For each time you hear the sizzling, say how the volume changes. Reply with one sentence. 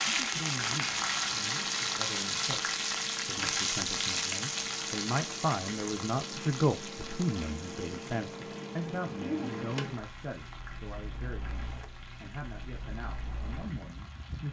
You can hear the sizzling from 0.0 to 14.4 s, getting quieter.